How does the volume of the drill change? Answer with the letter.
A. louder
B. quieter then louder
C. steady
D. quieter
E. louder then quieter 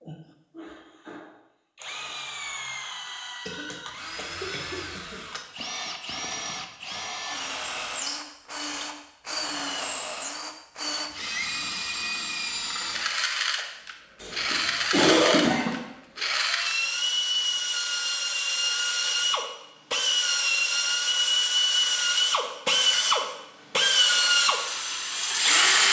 A.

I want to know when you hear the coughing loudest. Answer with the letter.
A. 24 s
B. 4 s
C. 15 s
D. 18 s
C.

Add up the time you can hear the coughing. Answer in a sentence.
You can hear the coughing for 3 seconds altogether.